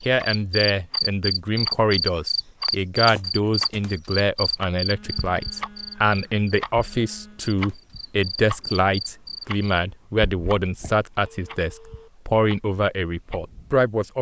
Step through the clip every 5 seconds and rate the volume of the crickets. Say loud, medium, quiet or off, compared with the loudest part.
loud, medium, off.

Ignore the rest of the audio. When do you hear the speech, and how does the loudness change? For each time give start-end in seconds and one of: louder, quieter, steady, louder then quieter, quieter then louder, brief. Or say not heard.
0.0-14.1 steady.